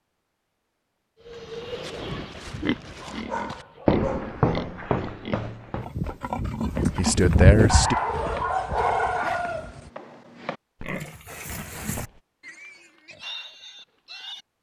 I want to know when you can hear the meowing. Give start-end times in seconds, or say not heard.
not heard.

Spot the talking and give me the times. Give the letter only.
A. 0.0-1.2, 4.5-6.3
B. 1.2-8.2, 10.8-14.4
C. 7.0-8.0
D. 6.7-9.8
C.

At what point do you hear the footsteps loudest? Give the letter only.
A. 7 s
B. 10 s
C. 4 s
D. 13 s
C.